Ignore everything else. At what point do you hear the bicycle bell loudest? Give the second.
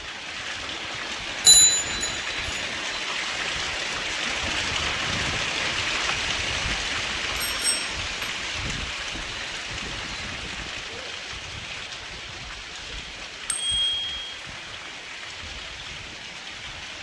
2 s.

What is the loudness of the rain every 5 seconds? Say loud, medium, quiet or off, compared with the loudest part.
loud, loud, medium, medium.